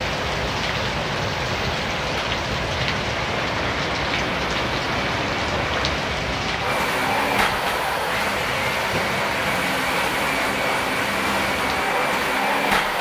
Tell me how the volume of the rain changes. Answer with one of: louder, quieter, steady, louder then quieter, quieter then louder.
quieter.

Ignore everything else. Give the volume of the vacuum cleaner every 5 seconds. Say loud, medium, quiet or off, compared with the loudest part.
medium, loud, loud.